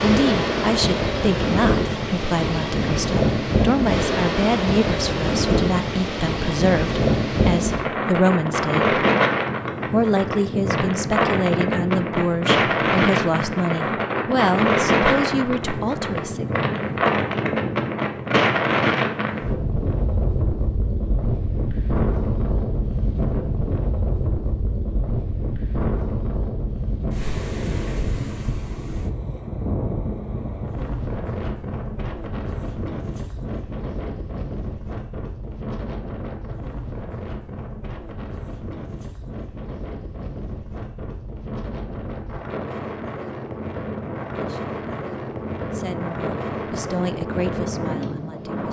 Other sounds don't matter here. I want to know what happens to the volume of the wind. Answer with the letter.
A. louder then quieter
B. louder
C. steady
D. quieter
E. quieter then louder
D.